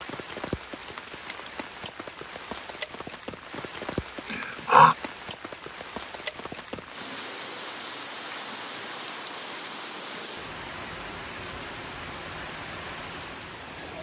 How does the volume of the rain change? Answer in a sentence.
The volume of the rain stays about the same.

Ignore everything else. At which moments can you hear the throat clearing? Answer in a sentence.
The throat clearing can be heard from 4.2 to 5.0 s.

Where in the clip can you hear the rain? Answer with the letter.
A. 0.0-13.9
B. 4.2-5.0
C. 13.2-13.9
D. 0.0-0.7
A.